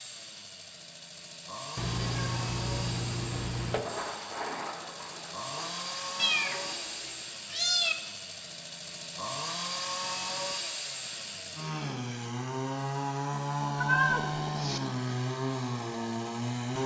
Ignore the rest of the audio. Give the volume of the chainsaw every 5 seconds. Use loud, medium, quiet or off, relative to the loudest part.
medium, medium, loud, loud.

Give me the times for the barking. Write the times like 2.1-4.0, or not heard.
not heard.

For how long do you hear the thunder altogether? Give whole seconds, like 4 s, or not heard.
3 s.